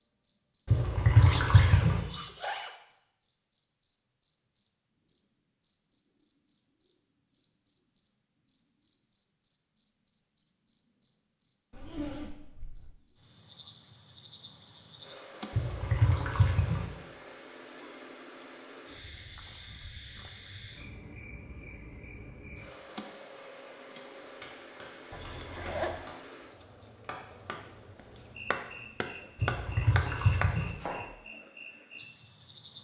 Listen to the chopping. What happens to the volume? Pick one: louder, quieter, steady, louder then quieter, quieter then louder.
louder.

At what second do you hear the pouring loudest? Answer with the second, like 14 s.
1 s.